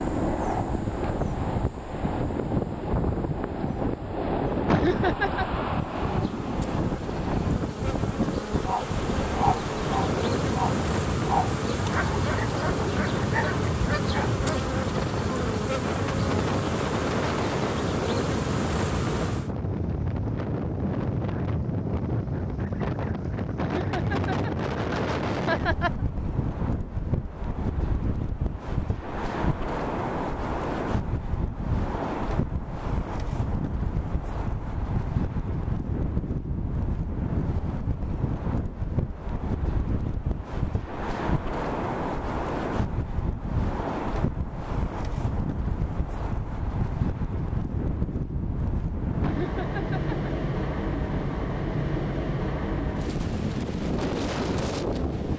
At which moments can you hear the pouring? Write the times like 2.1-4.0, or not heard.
not heard.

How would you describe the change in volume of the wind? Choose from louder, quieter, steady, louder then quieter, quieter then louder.
steady.